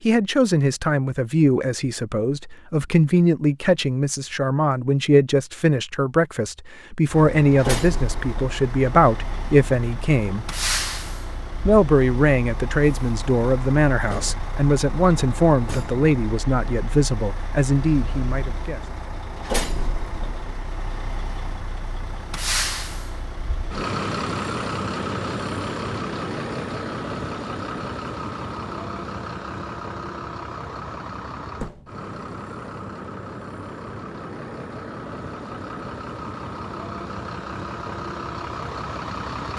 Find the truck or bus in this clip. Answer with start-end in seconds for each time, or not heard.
7.0-39.5.